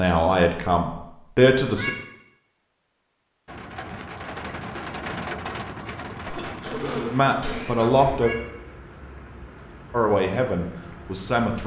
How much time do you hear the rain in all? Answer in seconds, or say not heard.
8 s.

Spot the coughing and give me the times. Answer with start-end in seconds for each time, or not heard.
6.2-8.1.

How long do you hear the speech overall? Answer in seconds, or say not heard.
5 s.